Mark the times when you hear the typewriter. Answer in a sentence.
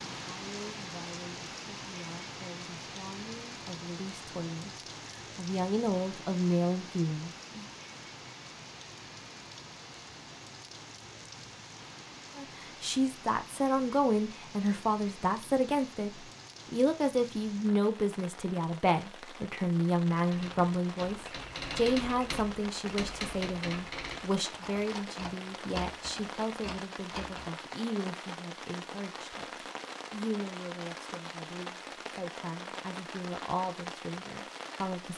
The typewriter can be heard from 20.1 to 27.5 s.